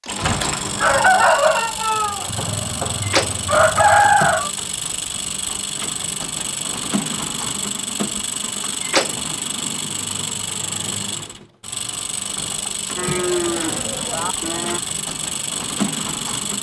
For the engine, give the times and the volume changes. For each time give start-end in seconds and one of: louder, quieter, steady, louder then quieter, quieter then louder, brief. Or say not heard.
0.0-16.5 steady.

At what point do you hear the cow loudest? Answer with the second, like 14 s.
13 s.